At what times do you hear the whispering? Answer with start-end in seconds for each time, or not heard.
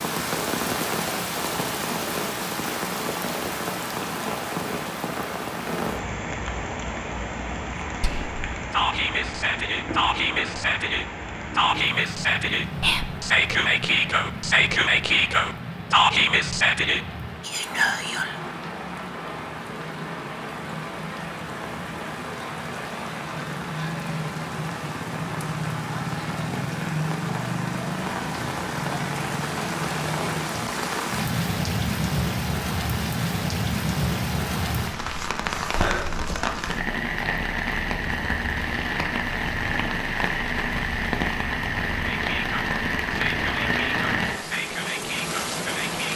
8.0-18.4, 42.0-46.1.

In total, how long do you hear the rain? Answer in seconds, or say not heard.
46 s.